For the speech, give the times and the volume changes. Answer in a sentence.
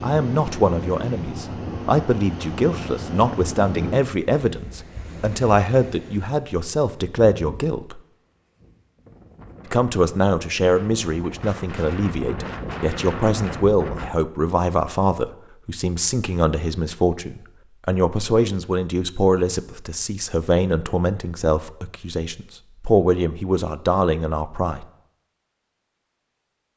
The speech can be heard from 0.0 to 8.0 s, at a steady volume; and from 9.7 to 24.9 s, at a steady volume.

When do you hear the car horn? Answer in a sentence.
The car horn can't be heard in this clip.